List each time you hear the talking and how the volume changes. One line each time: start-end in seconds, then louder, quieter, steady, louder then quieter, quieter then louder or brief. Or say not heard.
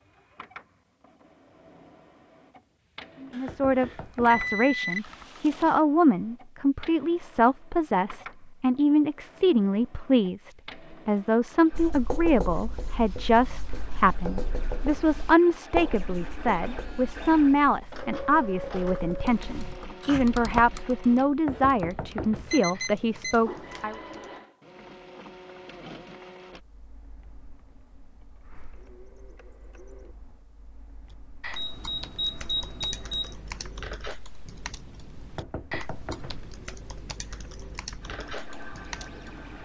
3.2-23.9 steady.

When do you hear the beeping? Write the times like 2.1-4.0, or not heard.
3.3-5.8, 22.5-23.9, 31.6-33.4.